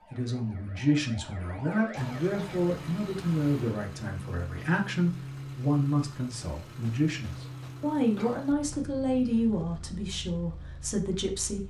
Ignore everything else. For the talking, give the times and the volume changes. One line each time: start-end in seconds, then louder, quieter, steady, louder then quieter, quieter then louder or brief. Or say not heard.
0.1-11.6 steady.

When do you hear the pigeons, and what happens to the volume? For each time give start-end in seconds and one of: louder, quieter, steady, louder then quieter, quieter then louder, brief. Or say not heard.
not heard.